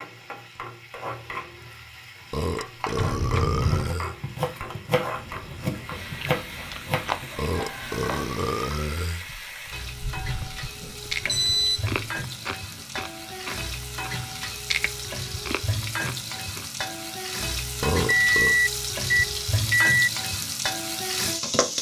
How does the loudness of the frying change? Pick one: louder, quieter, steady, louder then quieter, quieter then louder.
louder.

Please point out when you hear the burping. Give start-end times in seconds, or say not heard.
2.3-4.2, 7.3-9.2, 17.8-18.6.